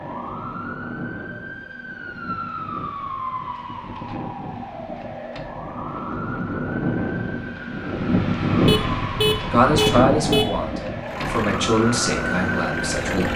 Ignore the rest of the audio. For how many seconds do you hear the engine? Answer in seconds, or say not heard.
2 s.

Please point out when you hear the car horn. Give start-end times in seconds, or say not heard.
8.7-10.7.